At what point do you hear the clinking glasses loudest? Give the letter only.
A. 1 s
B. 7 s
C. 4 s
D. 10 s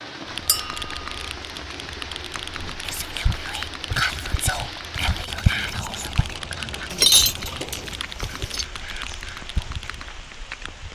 B.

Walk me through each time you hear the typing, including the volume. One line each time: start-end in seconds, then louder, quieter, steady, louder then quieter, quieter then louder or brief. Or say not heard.
0.2-10.2 steady.